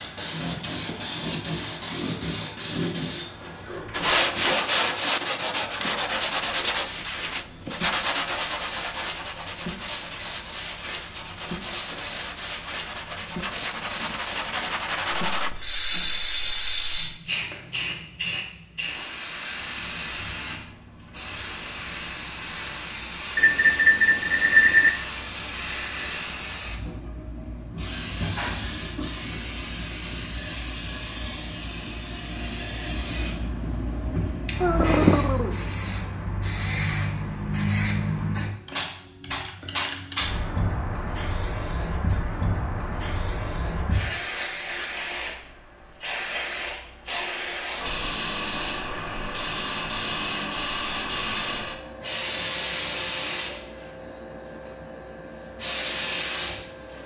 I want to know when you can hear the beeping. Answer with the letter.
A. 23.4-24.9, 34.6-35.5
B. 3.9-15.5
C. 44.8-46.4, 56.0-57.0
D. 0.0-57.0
A.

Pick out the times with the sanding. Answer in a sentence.
You can hear the sanding from 3.9 to 15.5 s.